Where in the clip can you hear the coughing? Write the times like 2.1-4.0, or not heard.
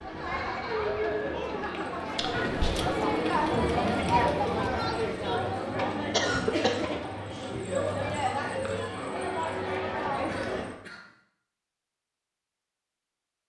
2.1-2.9, 6.1-7.0, 10.1-11.1.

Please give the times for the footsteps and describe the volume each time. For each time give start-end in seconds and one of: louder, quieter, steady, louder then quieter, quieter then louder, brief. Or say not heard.
not heard.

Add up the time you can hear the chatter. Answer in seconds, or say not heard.
11 s.